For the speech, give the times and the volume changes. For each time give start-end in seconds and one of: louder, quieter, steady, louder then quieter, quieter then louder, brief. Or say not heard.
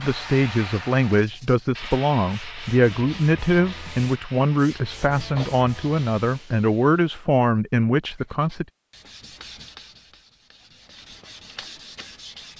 0.0-8.7 steady.